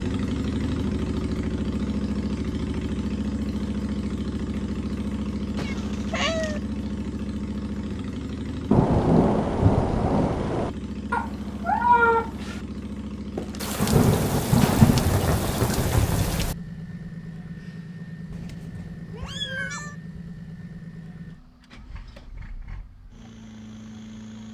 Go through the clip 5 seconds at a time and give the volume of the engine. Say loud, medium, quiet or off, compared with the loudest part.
loud, loud, medium, medium, quiet.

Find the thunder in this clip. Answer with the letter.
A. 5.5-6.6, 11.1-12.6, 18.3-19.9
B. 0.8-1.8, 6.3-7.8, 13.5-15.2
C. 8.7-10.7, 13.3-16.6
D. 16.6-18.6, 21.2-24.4
C.